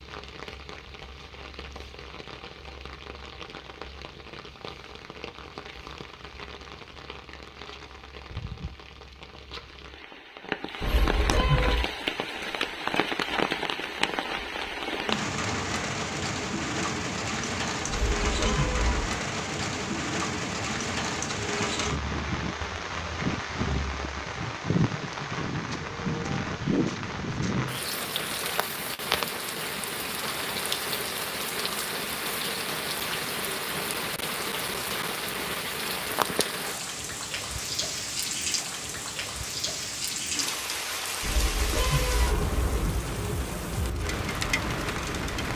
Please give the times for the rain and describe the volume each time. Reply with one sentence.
The rain can be heard from 0.0 to 45.5 s, getting louder.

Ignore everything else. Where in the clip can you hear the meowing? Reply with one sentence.
You can hear the meowing from 10.8 to 11.9 s, from 17.9 to 19.2 s and from 41.2 to 43.0 s.